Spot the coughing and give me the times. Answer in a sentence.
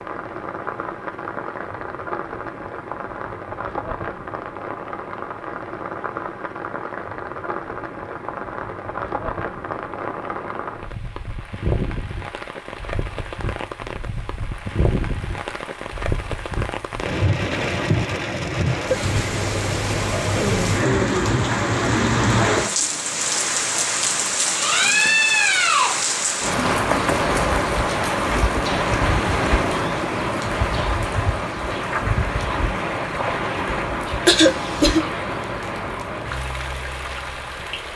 You can hear the coughing from 34.2 to 35.0 s.